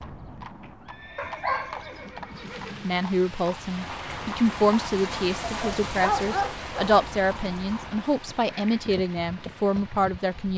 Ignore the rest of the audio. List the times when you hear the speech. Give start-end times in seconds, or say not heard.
2.8-10.5.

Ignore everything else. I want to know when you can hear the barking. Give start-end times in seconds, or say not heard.
1.1-2.6, 5.4-7.0.